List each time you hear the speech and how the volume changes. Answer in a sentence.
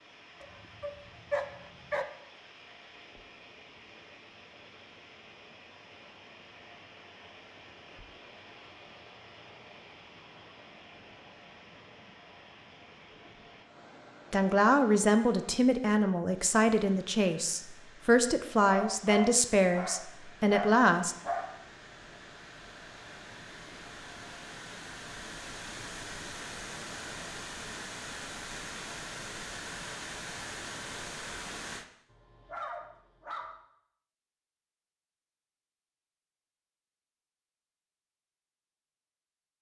You can hear the speech from 14.3 to 21.1 s, at a steady volume.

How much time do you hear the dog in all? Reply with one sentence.
The dog can be heard for 6 seconds in total.